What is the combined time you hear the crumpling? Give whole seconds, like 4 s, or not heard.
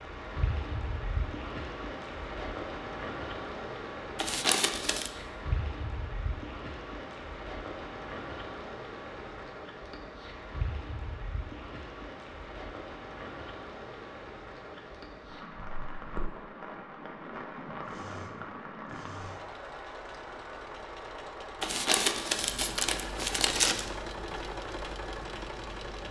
3 s.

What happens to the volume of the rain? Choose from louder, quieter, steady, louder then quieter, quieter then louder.
quieter.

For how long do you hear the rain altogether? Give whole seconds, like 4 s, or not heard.
26 s.